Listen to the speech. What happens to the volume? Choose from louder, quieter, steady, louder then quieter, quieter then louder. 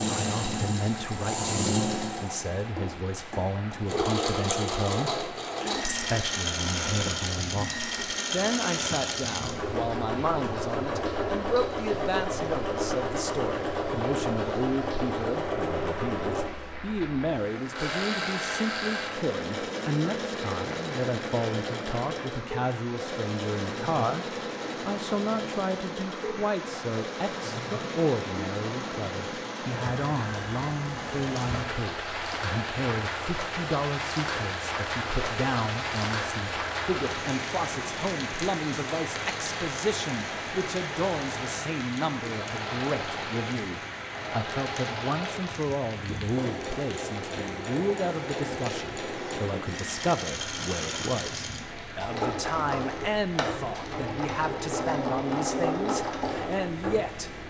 steady.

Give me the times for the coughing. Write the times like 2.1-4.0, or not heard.
not heard.